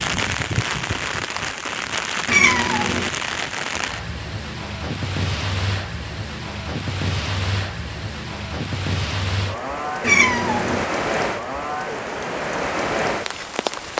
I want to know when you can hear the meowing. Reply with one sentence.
The meowing can be heard from 2.2 to 3.1 s and from 10.0 to 10.8 s.